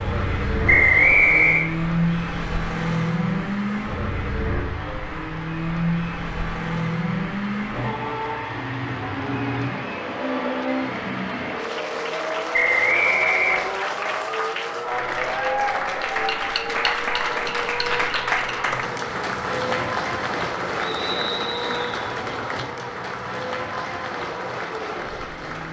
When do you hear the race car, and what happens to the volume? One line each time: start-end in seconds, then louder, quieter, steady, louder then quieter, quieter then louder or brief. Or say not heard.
0.0-25.6 quieter.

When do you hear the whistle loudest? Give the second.
1 s.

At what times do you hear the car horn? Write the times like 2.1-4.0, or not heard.
not heard.